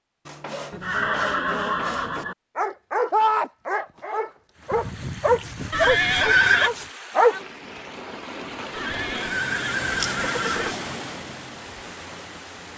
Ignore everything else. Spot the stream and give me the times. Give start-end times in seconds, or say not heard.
4.5-12.7.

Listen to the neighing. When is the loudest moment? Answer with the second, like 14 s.
6 s.